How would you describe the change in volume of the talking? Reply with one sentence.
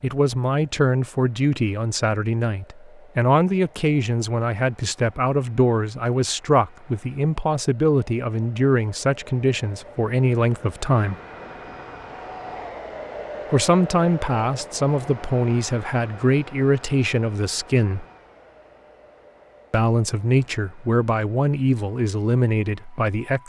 The loudness of the talking stays about the same.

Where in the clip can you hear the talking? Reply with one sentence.
You can hear the talking from 0.0 to 11.2 s, from 13.5 to 18.1 s and from 19.7 to 23.4 s.